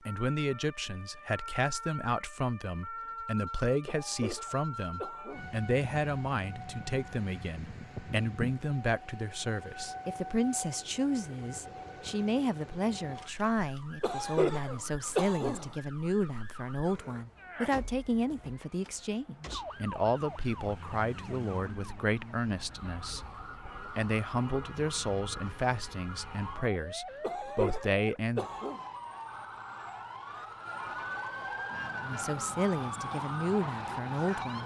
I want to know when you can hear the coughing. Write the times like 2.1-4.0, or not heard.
3.9-5.6, 14.0-15.8, 27.2-28.8.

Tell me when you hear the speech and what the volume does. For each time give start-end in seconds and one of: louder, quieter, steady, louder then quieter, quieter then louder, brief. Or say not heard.
0.1-28.4 steady
32.0-34.6 brief.